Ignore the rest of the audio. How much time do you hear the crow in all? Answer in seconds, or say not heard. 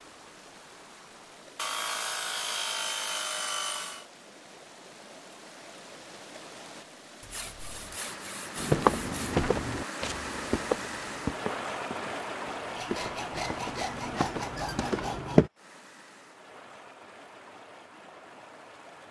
not heard.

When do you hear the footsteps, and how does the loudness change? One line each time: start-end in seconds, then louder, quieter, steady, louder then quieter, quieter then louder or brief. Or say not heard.
8.6-15.5 quieter then louder.